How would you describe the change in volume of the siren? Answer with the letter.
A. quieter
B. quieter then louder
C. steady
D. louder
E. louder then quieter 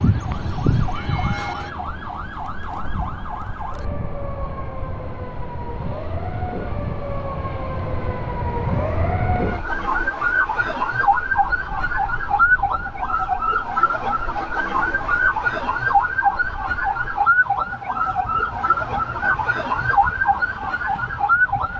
D.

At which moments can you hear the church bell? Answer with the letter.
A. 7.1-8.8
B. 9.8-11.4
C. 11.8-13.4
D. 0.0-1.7
D.